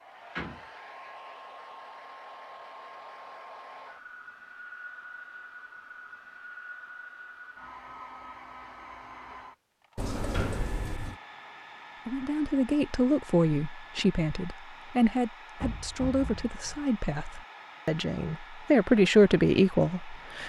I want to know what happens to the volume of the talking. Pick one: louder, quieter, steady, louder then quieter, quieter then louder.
quieter then louder.